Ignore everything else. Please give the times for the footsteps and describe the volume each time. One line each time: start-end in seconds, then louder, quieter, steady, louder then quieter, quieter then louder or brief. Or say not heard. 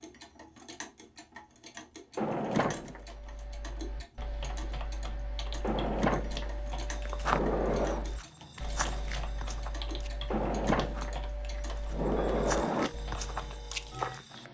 6.9-14.4 quieter then louder.